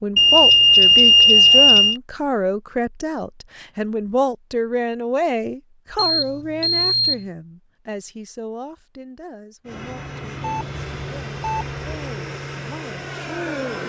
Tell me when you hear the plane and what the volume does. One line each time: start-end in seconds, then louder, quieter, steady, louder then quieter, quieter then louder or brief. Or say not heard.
9.7-13.8 steady.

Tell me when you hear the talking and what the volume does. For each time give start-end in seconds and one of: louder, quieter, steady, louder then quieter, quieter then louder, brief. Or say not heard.
0.0-13.8 quieter.